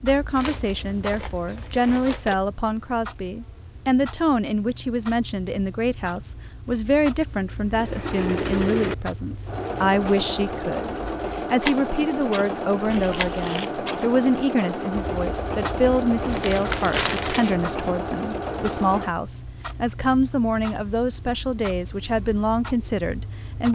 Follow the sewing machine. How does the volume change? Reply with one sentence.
The loudness of the sewing machine stays about the same.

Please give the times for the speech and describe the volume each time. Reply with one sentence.
The speech can be heard from 0.0 to 23.7 s, at a steady volume.